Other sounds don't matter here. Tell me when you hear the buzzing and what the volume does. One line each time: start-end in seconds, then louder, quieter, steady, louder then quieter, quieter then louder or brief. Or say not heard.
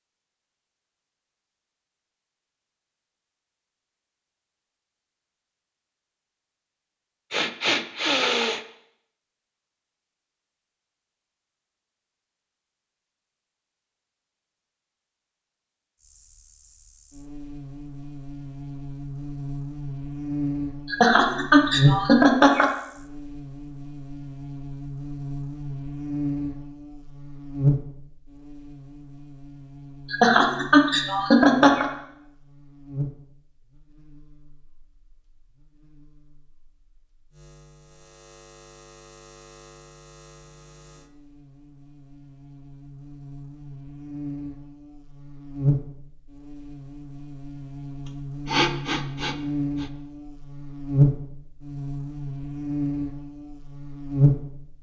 15.9-54.7 quieter then louder.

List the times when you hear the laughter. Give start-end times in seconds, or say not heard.
20.9-22.7, 30.1-31.9.